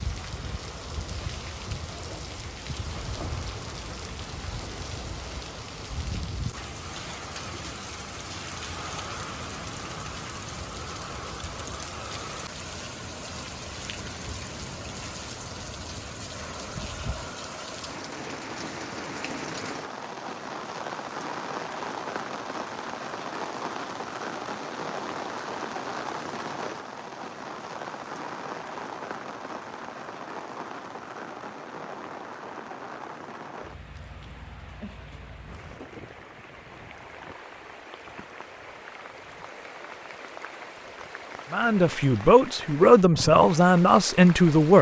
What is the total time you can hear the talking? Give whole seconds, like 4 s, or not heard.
3 s.